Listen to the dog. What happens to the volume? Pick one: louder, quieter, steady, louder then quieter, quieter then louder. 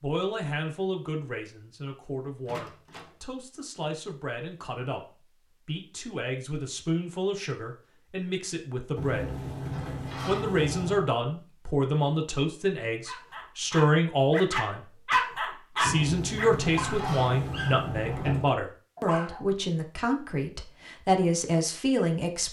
louder then quieter.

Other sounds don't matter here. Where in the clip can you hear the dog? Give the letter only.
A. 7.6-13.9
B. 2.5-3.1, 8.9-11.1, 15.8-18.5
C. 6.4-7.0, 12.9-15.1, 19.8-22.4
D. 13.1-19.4
D.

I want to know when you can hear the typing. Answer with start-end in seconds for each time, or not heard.
not heard.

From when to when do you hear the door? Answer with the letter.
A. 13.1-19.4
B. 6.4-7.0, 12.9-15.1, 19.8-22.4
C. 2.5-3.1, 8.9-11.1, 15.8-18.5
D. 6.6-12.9
C.